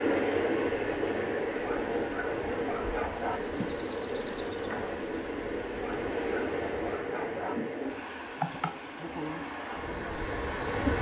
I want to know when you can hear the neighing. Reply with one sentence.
The neighing can't be heard in this clip.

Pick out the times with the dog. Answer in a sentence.
The dog can be heard from 1.6 to 3.4 s and from 5.8 to 7.5 s.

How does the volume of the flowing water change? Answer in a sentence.
The loudness of the flowing water goes down.